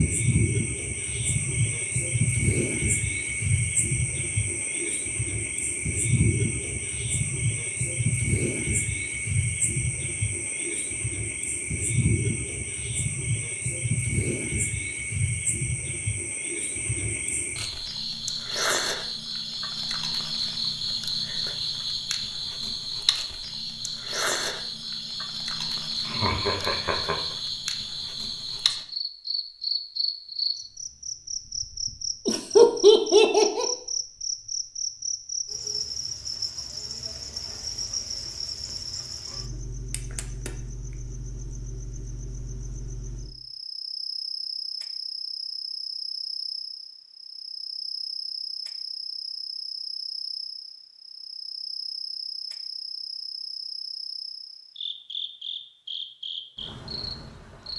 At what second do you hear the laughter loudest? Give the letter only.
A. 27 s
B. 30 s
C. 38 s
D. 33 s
D.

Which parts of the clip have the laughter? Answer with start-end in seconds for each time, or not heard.
26.1-27.1, 32.2-33.6.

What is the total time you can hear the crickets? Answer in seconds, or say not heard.
58 s.